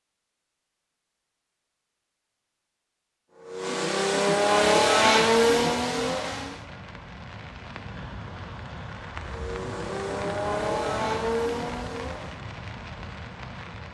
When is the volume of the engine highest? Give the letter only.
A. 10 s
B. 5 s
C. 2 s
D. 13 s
B.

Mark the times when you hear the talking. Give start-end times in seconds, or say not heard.
not heard.